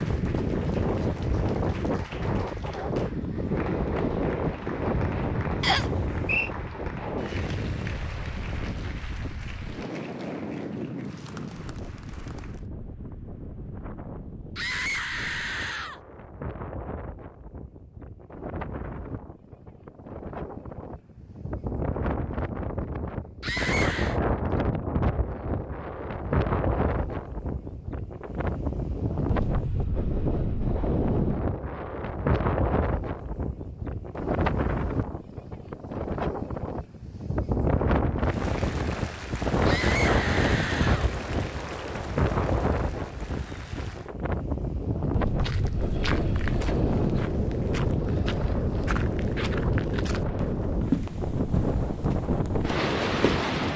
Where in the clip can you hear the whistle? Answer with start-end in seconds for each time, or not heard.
5.6-6.5.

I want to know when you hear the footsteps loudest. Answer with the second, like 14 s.
51 s.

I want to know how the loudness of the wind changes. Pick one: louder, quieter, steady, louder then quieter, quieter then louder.
quieter then louder.